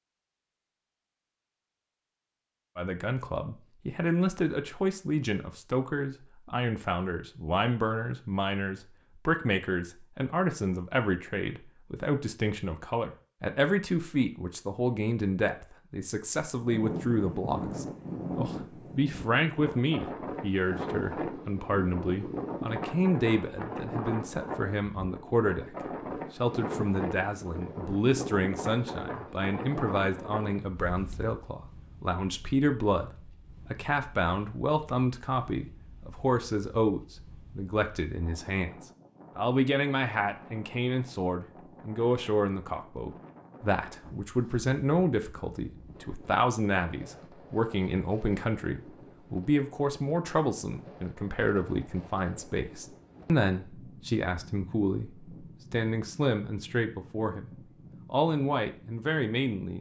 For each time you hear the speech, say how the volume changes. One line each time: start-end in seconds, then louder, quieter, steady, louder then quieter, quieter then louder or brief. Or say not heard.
2.8-25.8 steady
26.4-38.8 steady
39.4-59.7 steady.